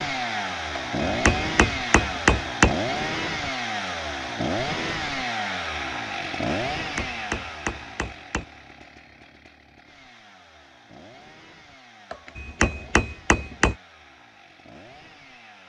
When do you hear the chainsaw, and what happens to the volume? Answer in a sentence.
The chainsaw can be heard from 0.0 to 15.6 s, getting quieter.